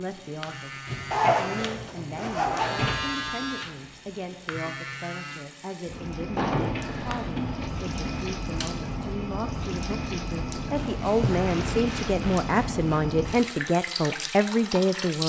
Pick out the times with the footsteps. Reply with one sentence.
The footsteps can't be heard in this clip.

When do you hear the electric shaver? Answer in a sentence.
The electric shaver can be heard from 0.2 to 5.5 s.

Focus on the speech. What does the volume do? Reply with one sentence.
The volume of the speech goes up.